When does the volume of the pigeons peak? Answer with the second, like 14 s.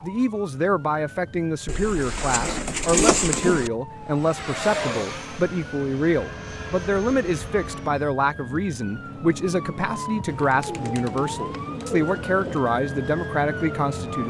3 s.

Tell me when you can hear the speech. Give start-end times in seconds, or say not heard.
0.0-14.2.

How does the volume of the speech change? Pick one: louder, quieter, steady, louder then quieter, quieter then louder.
steady.